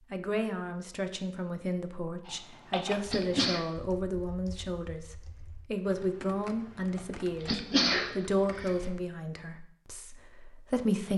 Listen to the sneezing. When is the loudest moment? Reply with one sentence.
The volume of the sneezing peaks at 8 seconds.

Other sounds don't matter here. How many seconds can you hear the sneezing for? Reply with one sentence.
The sneezing can be heard for 2 seconds in total.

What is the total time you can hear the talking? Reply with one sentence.
You can hear the talking for 11 seconds altogether.